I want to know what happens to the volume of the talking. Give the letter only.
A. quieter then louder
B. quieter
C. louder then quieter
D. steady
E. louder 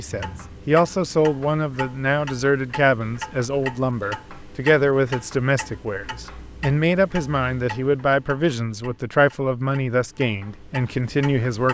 D.